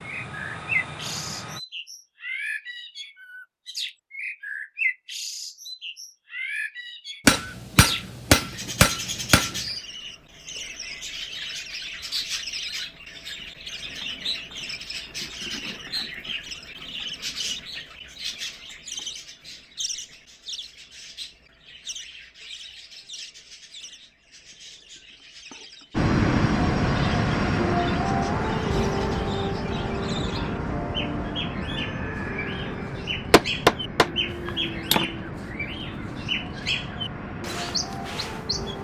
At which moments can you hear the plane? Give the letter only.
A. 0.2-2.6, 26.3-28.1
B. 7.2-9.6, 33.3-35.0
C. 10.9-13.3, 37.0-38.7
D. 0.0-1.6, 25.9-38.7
D.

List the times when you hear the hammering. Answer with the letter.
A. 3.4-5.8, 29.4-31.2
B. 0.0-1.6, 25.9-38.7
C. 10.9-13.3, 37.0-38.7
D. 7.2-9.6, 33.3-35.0
D.